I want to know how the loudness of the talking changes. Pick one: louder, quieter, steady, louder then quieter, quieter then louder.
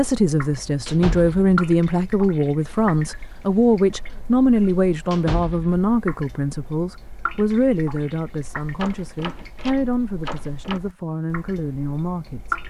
quieter.